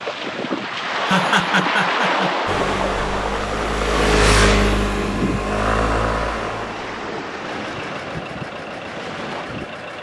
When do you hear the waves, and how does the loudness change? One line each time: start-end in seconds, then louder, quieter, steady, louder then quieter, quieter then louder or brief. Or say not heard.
0.0-9.8 quieter.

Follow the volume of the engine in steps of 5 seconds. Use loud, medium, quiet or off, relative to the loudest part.
loud, medium.